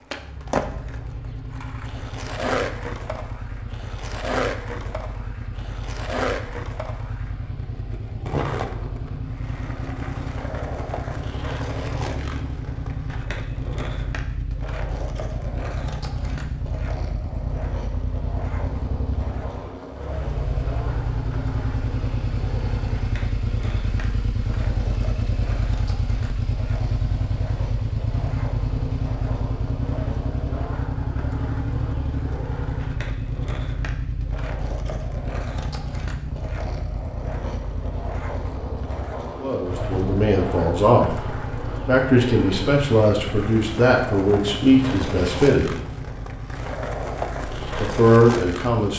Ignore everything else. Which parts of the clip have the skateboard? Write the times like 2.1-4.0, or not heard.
0.0-48.9.